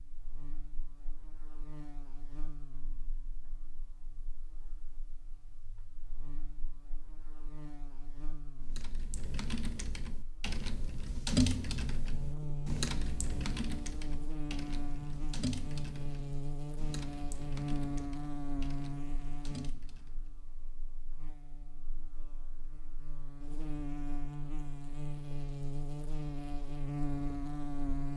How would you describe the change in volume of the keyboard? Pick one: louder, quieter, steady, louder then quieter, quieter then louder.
louder then quieter.